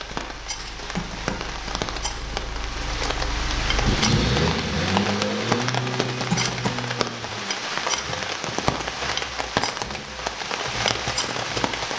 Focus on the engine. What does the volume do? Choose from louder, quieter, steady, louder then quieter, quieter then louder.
louder then quieter.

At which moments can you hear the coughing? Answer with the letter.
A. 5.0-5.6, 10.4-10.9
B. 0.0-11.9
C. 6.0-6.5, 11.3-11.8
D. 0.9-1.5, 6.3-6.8
D.